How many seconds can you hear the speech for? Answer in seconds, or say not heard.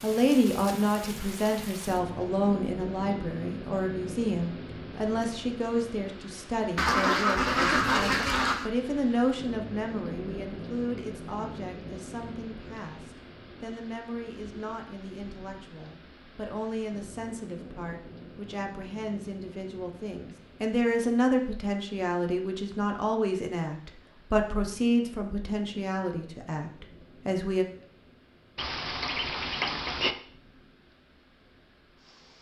28 s.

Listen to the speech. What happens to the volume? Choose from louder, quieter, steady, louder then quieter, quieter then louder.
quieter then louder.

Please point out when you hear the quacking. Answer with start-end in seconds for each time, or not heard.
6.8-8.7, 28.6-30.1.